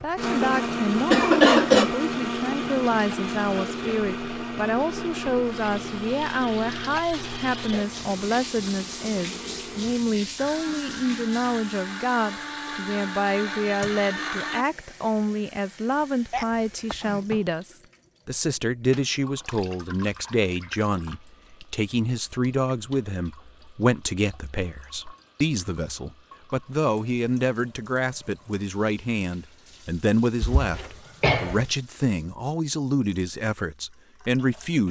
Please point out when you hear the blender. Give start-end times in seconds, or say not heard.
0.1-14.7.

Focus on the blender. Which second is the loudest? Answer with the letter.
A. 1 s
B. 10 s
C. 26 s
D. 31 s
A.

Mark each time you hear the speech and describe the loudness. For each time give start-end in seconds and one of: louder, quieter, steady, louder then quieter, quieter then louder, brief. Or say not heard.
0.0-34.8 steady.